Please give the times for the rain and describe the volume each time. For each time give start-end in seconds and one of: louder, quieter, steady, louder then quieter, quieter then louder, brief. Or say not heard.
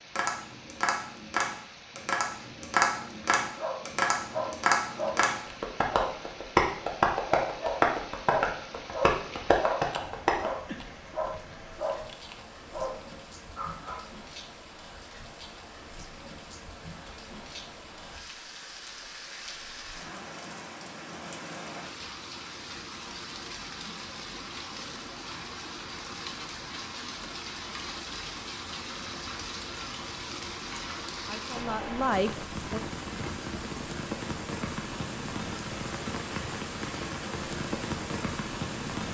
0.0-39.0 louder.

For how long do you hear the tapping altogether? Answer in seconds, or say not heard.
10 s.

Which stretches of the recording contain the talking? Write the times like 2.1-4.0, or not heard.
31.2-32.8.